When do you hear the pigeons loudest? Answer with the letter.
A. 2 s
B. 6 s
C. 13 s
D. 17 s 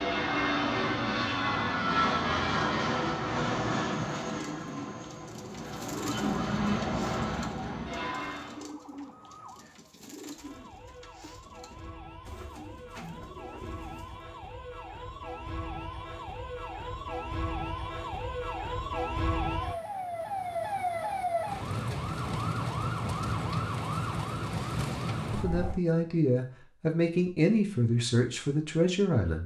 B.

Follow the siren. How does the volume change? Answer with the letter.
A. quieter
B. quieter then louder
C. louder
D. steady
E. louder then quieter
C.